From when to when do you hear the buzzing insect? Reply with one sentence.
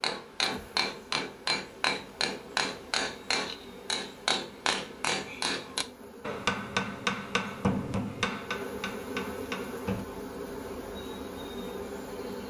You can hear the buzzing insect from 0.0 to 12.4 s.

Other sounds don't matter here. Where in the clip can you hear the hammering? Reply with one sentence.
The hammering can be heard from 0.0 to 10.1 s.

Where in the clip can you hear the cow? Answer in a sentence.
The cow can't be heard in this clip.